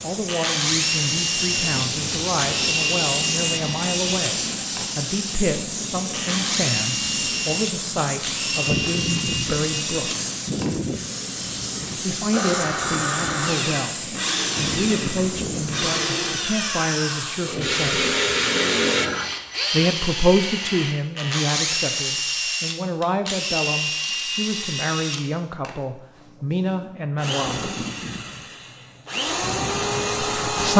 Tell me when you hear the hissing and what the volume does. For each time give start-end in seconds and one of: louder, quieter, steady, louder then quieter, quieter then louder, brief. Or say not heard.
0.0-19.3 steady.